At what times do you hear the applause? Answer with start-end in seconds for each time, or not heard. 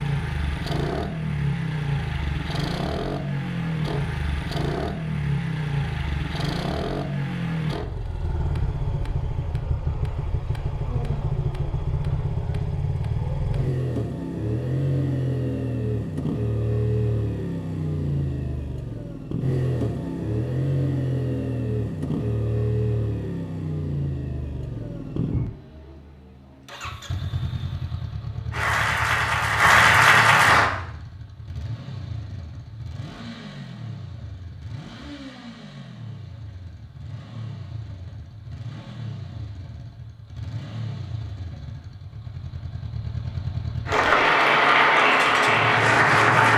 28.5-30.7, 43.9-46.5.